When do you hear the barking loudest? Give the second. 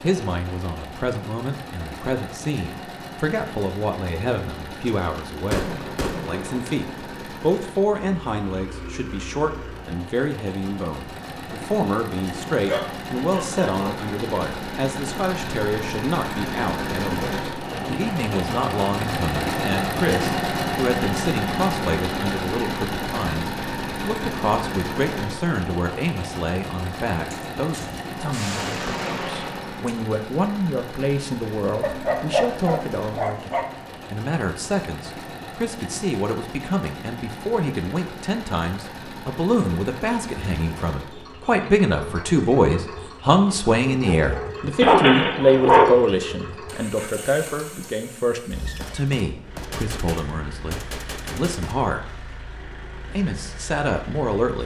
46 s.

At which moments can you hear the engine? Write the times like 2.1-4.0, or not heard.
0.0-54.6.